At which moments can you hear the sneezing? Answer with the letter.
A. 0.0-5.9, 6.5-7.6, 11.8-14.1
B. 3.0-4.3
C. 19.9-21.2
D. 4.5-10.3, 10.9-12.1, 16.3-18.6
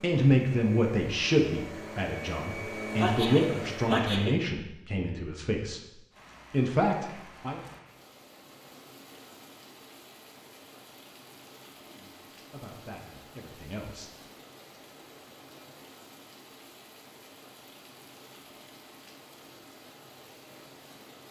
B.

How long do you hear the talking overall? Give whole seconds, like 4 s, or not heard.
9 s.